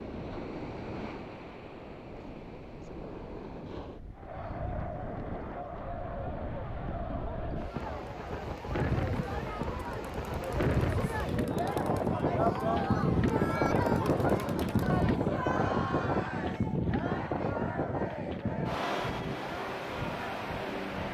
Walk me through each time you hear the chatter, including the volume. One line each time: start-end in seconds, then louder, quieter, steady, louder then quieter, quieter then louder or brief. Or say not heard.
4.1-21.0 louder then quieter.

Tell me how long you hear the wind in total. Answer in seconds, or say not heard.
21 s.